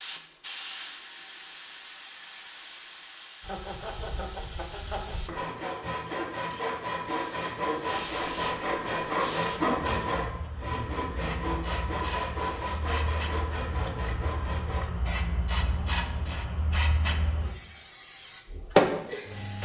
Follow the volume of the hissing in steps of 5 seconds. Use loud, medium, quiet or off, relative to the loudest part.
medium, medium, medium, loud.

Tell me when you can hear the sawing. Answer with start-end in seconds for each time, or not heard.
3.4-14.8.